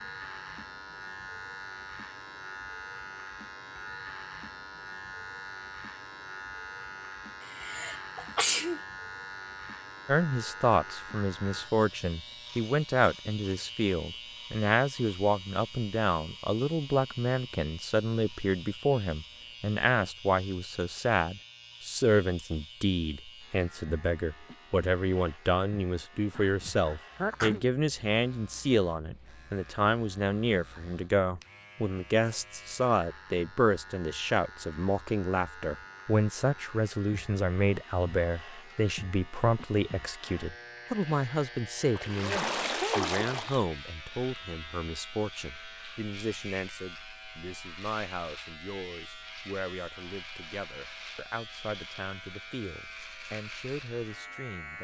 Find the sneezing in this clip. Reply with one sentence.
You can hear the sneezing from 7.5 to 8.8 s, from 26.4 to 27.6 s and from 42.2 to 43.1 s.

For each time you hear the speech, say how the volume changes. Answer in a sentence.
You can hear the speech from 10.1 to 54.7 s, getting quieter.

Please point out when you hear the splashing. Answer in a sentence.
You can hear the splashing from 41.9 to 43.6 s.